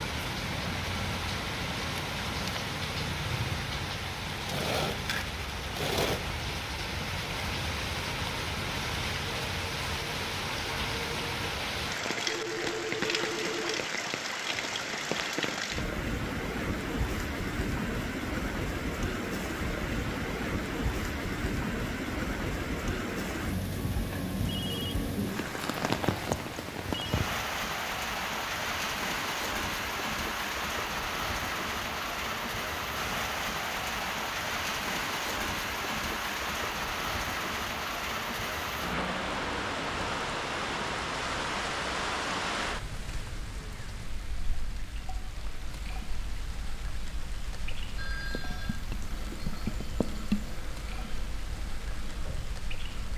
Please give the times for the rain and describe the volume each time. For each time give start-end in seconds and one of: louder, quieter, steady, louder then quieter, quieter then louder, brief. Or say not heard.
0.0-53.1 quieter.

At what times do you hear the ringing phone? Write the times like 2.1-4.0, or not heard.
12.2-13.9, 24.4-27.2, 48.0-48.9.